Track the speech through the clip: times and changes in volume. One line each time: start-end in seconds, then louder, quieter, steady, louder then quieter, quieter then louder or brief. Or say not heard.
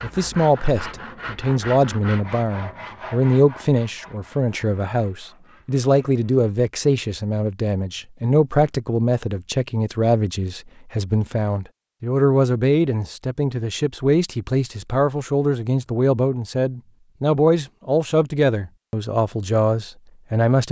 0.0-20.6 steady.